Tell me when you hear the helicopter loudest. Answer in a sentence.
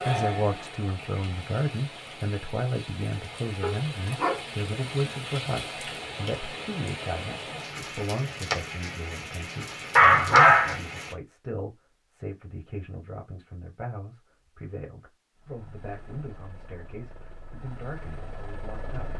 The volume of the helicopter peaks at 19 seconds.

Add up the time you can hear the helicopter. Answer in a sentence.
You can hear the helicopter for 4 seconds altogether.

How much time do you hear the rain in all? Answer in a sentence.
You can hear the rain for 11 seconds altogether.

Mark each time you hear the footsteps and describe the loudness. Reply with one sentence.
You can't hear the footsteps here.